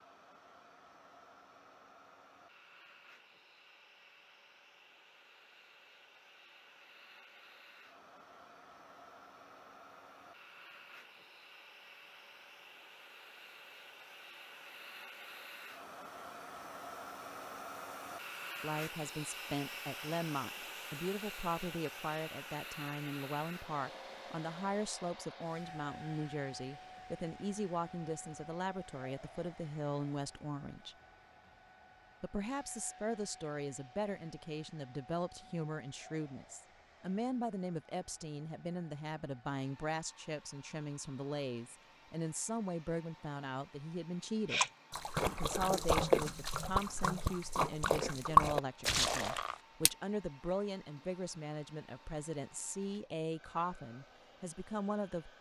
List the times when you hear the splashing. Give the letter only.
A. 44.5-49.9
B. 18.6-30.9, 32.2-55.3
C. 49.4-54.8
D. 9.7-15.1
A.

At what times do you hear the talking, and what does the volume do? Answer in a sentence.
You can hear the talking from 18.6 to 30.9 s, at a steady volume; and from 32.2 to 55.3 s, at a steady volume.